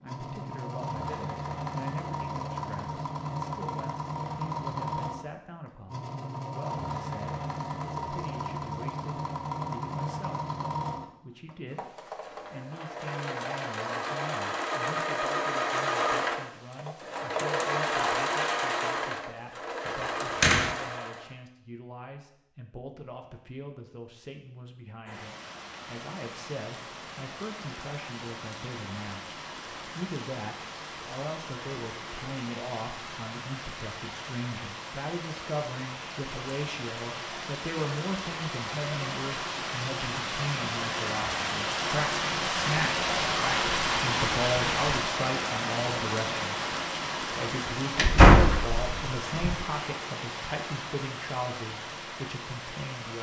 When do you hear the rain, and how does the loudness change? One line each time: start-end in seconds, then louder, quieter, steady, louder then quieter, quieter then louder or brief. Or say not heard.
25.1-53.1 louder then quieter.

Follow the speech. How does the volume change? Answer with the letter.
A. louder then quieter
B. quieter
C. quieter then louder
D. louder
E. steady
D.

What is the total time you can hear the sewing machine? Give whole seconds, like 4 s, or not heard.
21 s.